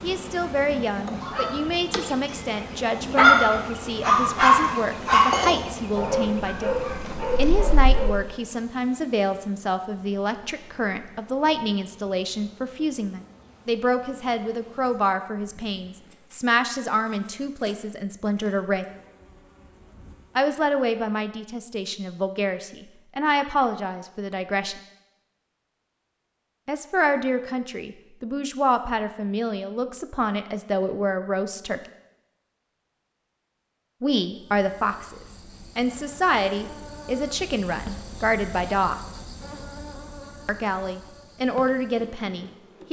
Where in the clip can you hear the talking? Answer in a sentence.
You can hear the talking from 0.0 to 6.8 s, from 7.3 to 18.9 s, from 20.4 to 24.8 s, from 26.6 to 31.8 s, from 34.0 to 39.0 s and from 40.5 to 42.8 s.